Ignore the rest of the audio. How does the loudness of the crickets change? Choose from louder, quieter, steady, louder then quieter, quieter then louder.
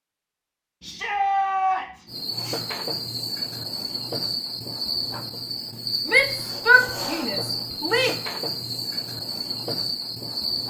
steady.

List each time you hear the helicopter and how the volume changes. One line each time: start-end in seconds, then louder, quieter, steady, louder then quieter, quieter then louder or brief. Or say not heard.
not heard.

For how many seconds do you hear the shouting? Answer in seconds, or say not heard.
3 s.